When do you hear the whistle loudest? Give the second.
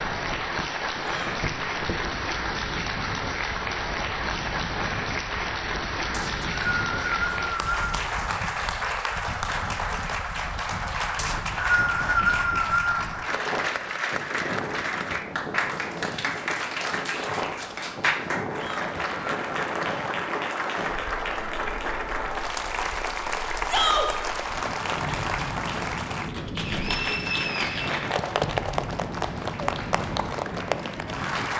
12 s.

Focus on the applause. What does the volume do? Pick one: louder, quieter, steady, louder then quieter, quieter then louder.
steady.